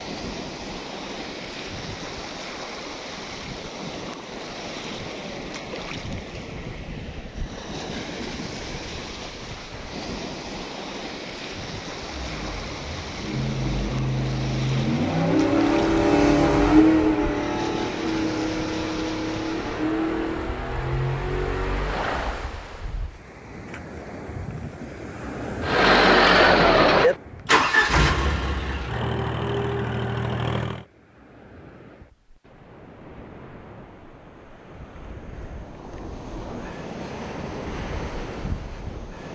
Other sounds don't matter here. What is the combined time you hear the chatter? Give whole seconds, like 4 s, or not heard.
not heard.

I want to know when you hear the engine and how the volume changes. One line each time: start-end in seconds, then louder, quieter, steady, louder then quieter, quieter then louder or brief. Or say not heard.
12.1-22.4 louder then quieter
25.6-30.9 quieter.